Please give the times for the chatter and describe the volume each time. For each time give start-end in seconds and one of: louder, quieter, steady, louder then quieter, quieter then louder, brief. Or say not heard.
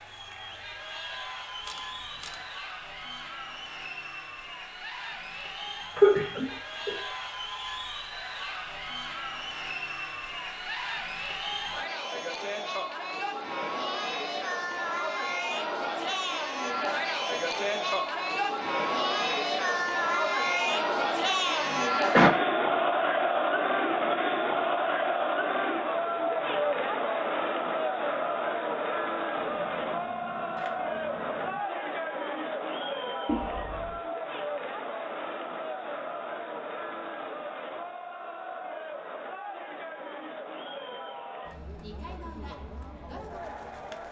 0.0-44.0 louder then quieter.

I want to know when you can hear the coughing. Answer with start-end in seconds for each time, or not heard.
6.0-7.0, 21.6-22.3, 33.2-34.0.